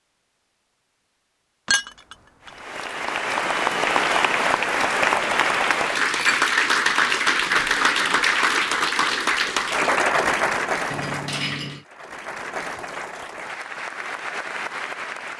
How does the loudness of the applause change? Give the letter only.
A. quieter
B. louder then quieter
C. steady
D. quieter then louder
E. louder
A.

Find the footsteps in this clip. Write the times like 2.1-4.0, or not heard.
not heard.